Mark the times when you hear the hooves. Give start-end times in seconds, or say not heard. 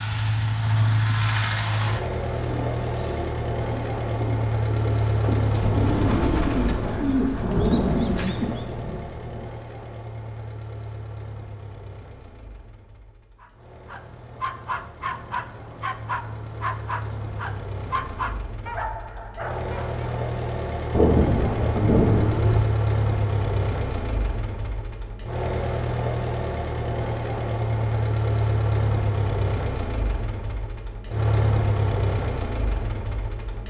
not heard.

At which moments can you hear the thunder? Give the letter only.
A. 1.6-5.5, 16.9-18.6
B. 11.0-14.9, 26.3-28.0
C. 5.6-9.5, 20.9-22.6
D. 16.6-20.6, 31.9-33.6
C.